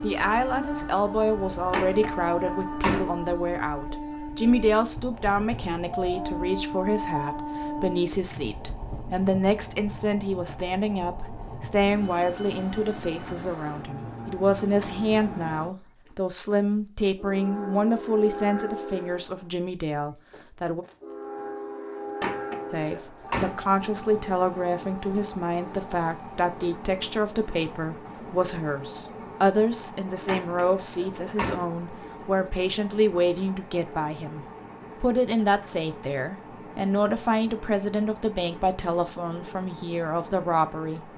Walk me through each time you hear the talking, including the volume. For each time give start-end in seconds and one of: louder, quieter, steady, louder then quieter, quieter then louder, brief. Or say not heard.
0.0-20.9 steady
22.7-41.0 steady.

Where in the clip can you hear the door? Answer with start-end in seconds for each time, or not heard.
1.7-3.1, 22.2-23.6, 30.2-31.7.